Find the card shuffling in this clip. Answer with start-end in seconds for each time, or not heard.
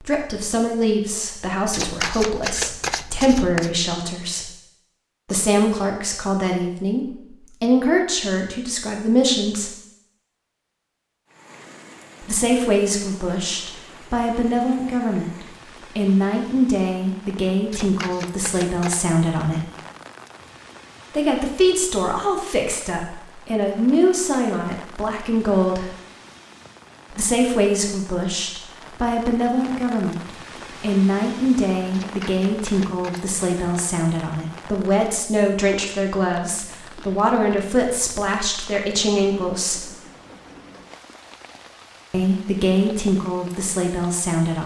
1.7-3.8, 17.7-19.1, 31.9-34.0.